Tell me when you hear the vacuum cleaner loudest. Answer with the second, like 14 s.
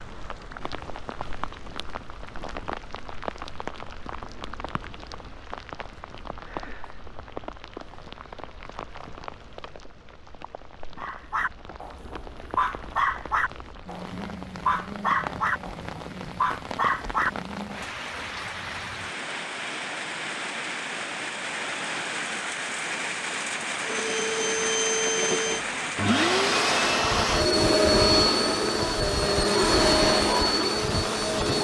28 s.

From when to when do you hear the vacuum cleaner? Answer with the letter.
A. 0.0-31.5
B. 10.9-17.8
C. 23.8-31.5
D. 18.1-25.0
C.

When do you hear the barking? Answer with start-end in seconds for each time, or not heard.
10.9-17.8.